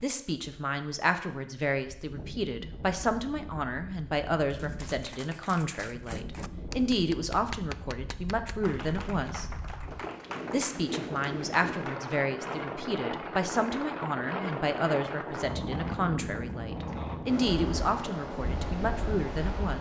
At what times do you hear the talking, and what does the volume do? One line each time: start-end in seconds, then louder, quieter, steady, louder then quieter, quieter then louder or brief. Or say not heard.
0.0-9.4 steady
10.5-19.7 steady.